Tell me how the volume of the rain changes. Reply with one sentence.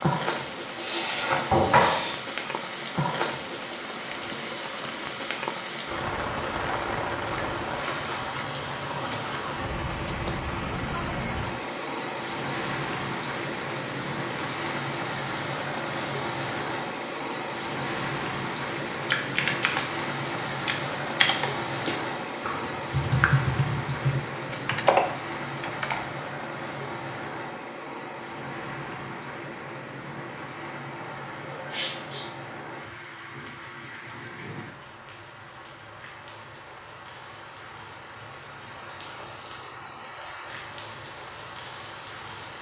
The loudness of the rain goes down.